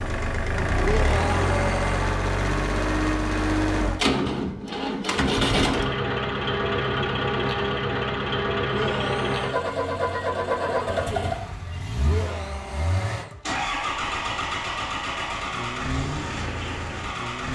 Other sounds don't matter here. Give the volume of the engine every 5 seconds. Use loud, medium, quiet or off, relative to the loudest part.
loud, loud, loud, medium.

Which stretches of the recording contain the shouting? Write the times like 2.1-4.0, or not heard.
0.8-2.0, 8.7-9.6, 12.1-13.3.